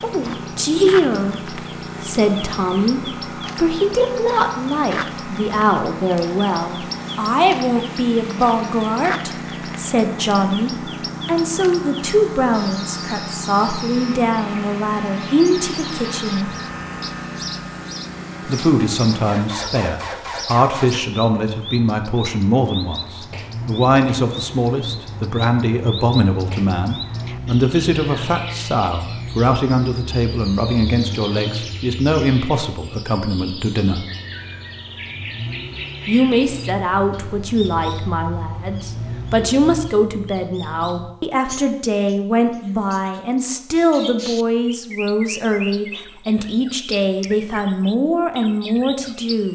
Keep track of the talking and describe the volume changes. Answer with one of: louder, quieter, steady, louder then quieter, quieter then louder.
steady.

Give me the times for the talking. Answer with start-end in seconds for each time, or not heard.
0.0-16.5, 18.4-34.0, 36.0-49.5.